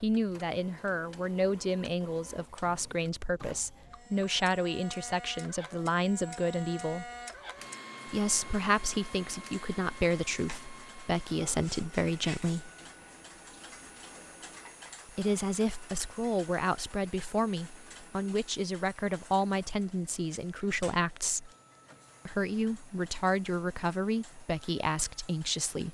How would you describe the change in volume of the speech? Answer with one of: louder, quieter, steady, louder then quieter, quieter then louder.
steady.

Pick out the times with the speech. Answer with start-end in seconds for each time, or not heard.
0.0-7.1, 8.1-12.7, 15.1-21.5, 22.2-25.8.